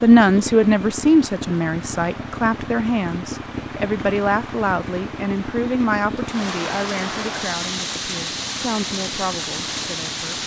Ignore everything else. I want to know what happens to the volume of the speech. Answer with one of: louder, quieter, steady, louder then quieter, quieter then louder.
quieter.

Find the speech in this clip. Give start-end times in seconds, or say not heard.
0.0-10.4.